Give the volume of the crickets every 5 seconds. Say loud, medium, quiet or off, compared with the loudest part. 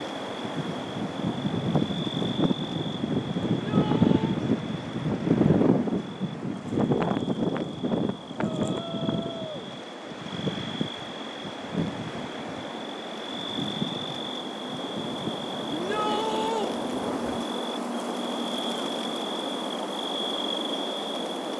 medium, medium, medium, loud, loud.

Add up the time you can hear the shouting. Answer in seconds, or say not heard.
3 s.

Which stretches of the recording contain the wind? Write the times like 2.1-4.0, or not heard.
0.0-17.4.